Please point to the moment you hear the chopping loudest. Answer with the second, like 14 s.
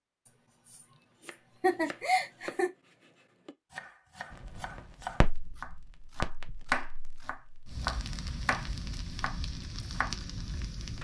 7 s.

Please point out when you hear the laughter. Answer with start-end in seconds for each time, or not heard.
0.2-2.7.